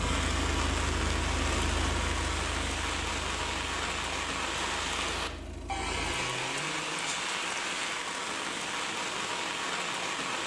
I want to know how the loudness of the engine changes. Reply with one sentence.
The volume of the engine goes down.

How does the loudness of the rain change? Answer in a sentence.
The volume of the rain stays about the same.